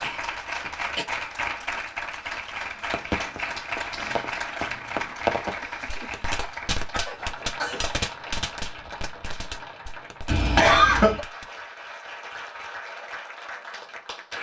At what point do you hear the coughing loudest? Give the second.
11 s.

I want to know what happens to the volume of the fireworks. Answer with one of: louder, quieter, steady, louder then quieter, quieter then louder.
louder then quieter.